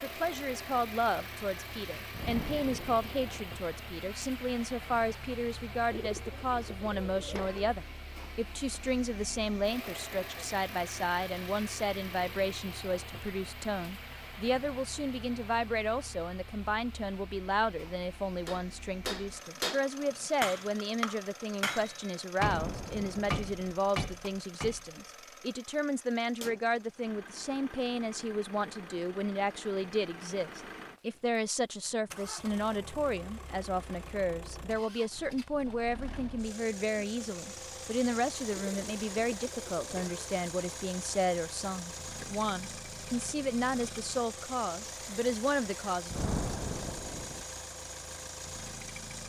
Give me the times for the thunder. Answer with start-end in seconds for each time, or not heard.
2.1-3.5, 22.4-23.8, 46.1-47.5.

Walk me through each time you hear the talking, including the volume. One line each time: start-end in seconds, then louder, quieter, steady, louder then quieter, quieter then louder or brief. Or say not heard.
0.0-46.1 steady.